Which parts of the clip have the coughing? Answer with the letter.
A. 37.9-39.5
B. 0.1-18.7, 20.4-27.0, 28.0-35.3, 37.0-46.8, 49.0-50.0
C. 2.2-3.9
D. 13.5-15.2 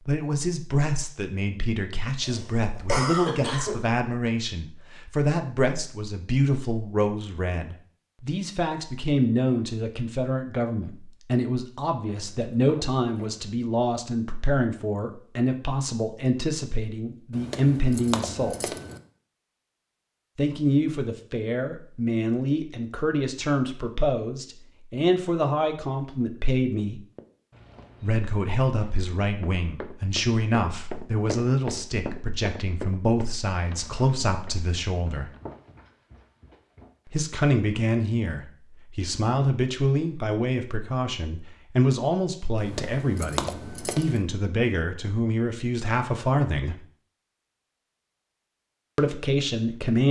C.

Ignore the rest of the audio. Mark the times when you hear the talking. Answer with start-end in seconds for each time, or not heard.
0.1-18.7, 20.4-27.0, 28.0-35.3, 37.0-46.8, 49.0-50.0.